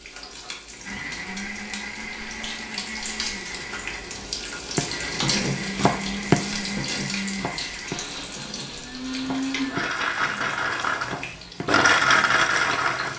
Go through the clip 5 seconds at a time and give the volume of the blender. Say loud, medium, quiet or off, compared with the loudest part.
quiet, medium, loud.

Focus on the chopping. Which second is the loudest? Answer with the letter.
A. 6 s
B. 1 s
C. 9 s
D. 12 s
A.